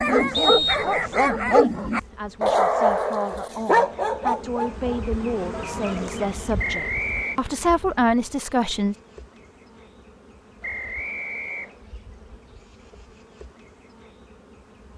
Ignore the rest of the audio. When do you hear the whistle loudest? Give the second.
1 s.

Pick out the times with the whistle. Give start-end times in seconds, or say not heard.
0.3-1.1, 6.5-7.4, 10.6-11.8.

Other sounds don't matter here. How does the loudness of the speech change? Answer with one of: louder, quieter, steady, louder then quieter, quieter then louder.
louder.